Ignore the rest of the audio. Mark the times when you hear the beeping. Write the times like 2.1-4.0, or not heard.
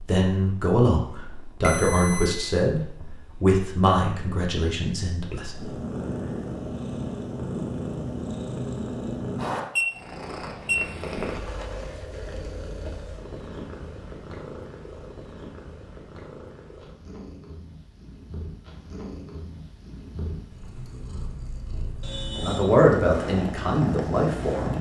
1.6-2.5, 9.8-10.8, 22.0-22.8.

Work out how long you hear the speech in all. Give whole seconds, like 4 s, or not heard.
8 s.